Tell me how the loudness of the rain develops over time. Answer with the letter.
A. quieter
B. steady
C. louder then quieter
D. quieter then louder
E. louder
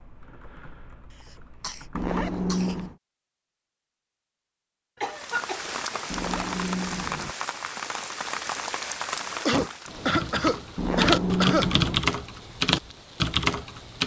A.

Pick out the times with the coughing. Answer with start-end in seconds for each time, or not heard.
1.6-2.8, 5.0-6.0, 9.4-11.7.